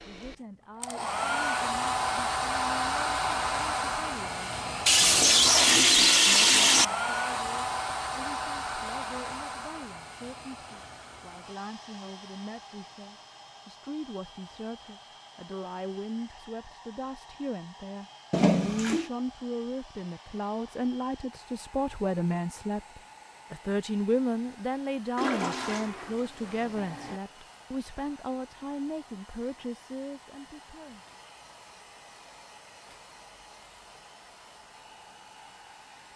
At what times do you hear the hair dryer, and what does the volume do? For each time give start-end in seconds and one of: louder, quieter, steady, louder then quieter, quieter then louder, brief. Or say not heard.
0.0-36.1 quieter.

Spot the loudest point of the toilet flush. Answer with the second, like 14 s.
6 s.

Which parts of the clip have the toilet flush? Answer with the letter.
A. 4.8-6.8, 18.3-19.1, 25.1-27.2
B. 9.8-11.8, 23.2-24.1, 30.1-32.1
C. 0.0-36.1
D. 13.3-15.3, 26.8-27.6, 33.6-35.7
A.